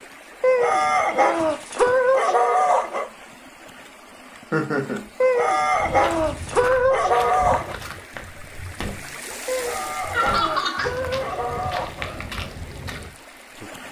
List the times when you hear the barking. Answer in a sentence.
You can hear the barking from 0.4 to 3.1 s, from 5.2 to 7.8 s and from 9.4 to 12.1 s.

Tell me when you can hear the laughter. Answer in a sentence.
The laughter can be heard from 4.5 to 5.0 s and from 10.1 to 10.9 s.